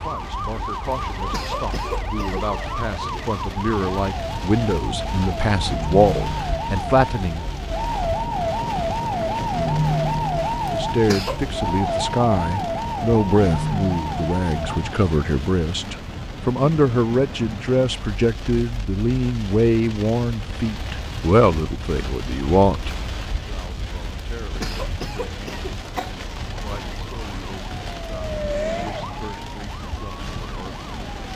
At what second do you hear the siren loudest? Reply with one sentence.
The loudest moment of the siren is at 10 seconds.